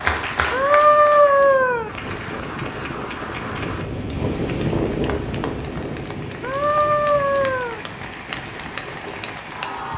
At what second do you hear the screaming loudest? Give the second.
1 s.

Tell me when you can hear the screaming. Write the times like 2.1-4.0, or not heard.
0.5-1.9, 6.4-7.8.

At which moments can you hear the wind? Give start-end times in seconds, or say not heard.
0.1-9.9.